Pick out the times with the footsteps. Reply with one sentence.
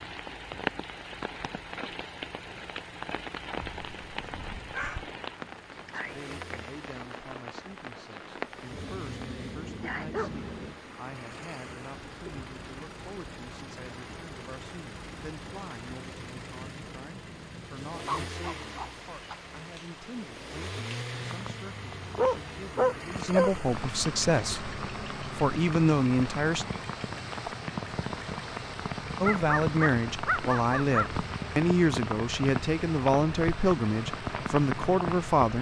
You can't hear the footsteps here.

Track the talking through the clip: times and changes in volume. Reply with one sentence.
The talking can be heard from 5.8 to 26.6 s, getting louder; and from 29.2 to 35.5 s, at a steady volume.